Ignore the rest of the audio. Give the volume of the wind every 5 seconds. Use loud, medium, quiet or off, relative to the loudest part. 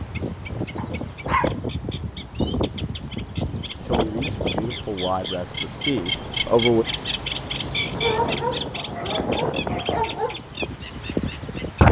medium, medium, loud.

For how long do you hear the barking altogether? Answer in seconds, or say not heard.
3 s.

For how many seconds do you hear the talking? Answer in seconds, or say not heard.
3 s.